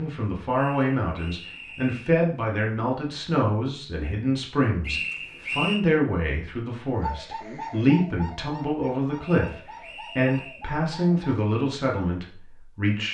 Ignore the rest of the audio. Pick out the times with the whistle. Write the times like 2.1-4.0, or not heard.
0.5-2.0, 4.8-5.8, 9.2-10.7.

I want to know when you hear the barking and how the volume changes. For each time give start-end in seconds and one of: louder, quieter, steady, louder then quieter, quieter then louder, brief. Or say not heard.
not heard.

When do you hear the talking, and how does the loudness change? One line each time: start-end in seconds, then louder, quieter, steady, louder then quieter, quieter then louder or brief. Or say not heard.
0.0-13.0 steady.